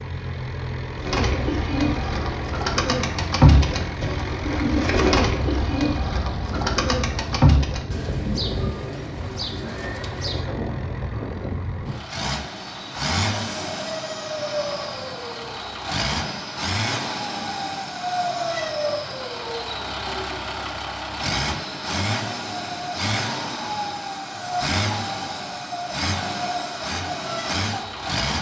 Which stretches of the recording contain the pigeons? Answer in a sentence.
You can hear the pigeons from 1.0 to 10.5 s.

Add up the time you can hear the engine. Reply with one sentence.
You can hear the engine for 28 seconds altogether.